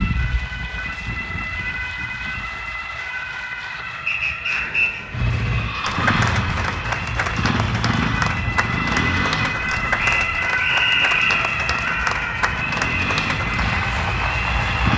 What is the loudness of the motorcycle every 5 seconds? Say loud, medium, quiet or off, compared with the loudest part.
off, loud, loud.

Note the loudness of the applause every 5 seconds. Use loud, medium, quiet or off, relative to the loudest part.
medium, loud, loud.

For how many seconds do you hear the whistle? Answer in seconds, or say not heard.
3 s.